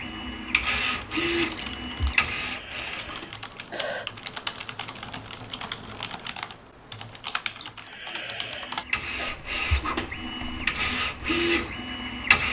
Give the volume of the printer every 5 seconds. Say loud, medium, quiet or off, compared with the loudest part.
loud, medium, loud.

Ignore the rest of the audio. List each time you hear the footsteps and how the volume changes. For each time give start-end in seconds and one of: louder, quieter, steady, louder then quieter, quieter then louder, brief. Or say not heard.
not heard.